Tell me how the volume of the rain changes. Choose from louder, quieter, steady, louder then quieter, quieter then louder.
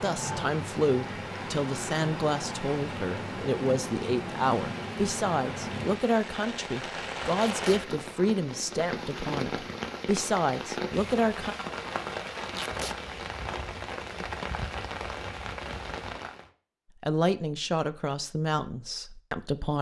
steady.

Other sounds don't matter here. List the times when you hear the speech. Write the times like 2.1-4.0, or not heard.
0.0-11.6, 17.0-19.7.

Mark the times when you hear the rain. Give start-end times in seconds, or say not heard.
0.0-16.5.